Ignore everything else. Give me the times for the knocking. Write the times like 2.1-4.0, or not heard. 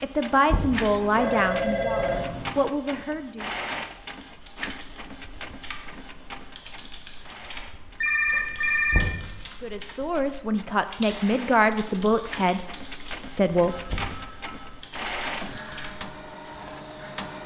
0.5-0.9, 8.9-9.4, 13.8-14.3.